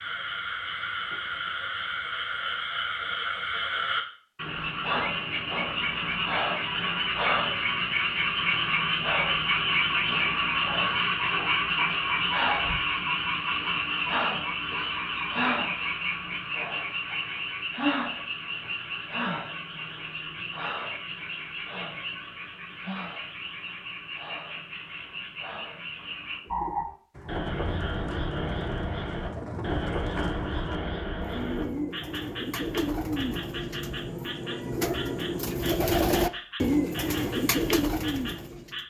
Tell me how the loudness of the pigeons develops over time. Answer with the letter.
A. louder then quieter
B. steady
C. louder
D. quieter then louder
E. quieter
C.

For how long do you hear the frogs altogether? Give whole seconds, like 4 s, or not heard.
39 s.